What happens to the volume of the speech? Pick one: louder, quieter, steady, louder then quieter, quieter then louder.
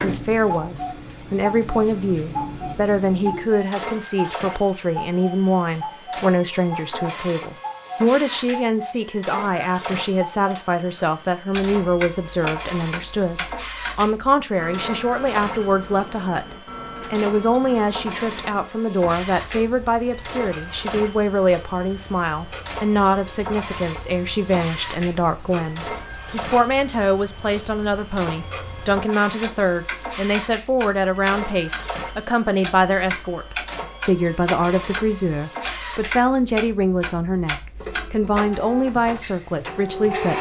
steady.